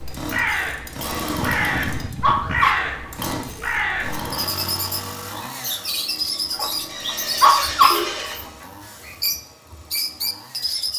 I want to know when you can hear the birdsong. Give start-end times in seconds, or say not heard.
0.0-10.9.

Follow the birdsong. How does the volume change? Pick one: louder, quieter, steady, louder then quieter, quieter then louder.
steady.